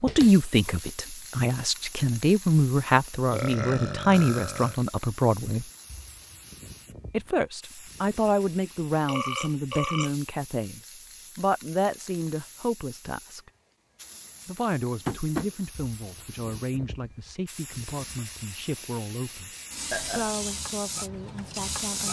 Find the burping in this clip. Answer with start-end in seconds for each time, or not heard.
3.3-4.8, 9.1-10.1, 19.9-20.4.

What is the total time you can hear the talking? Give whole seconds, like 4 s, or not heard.
19 s.